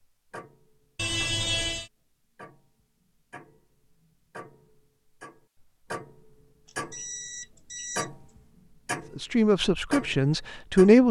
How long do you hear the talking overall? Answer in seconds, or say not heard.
2 s.